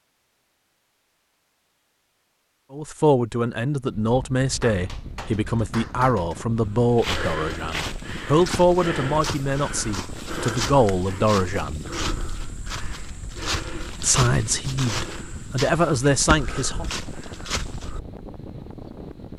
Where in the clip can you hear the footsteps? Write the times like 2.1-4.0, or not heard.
6.7-18.0.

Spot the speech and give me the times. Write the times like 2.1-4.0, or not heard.
2.7-11.8, 14.0-16.9.